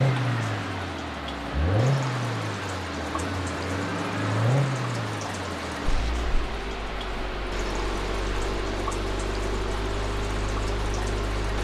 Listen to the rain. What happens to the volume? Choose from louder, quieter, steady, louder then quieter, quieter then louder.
steady.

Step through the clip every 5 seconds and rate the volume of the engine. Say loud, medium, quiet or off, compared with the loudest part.
loud, medium, medium.